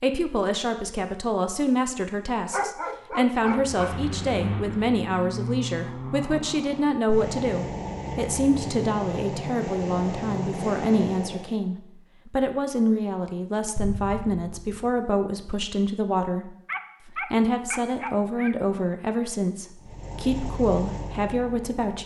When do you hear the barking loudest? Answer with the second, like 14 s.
3 s.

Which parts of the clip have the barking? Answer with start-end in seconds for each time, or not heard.
2.5-4.0, 16.6-18.6.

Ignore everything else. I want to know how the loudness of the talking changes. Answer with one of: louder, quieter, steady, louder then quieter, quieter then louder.
steady.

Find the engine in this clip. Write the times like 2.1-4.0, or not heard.
3.4-11.6, 19.8-22.0.